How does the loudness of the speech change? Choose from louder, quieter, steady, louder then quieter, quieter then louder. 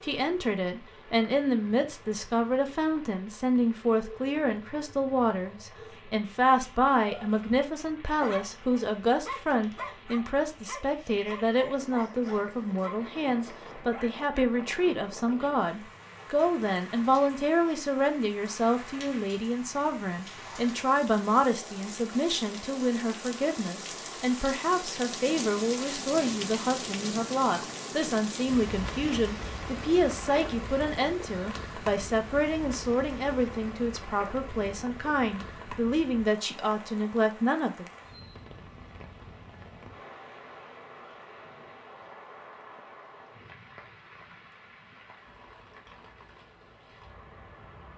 steady.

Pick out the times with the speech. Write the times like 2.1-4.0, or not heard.
0.0-37.9.